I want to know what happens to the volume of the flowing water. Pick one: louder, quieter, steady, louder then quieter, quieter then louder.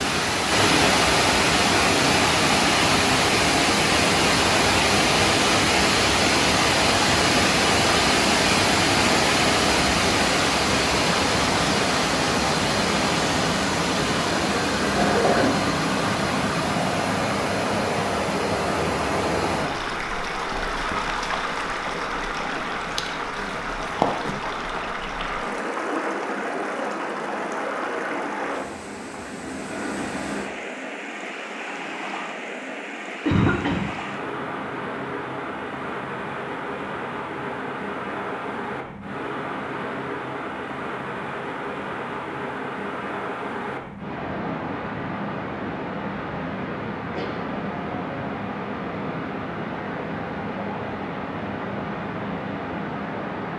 quieter.